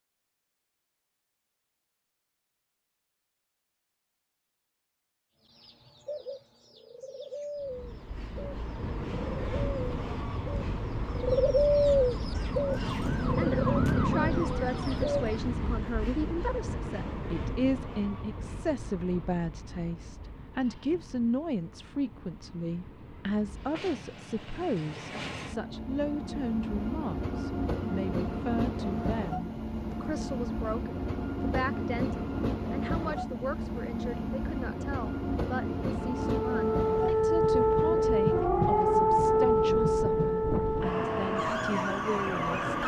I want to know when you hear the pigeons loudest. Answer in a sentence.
The volume of the pigeons peaks at 12 seconds.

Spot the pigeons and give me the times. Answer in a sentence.
You can hear the pigeons from 5.5 to 15.3 s.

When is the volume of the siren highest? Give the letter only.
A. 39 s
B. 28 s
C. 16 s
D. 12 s
A.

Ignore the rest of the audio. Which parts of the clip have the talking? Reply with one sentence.
The talking can be heard from 13.3 to 42.8 s.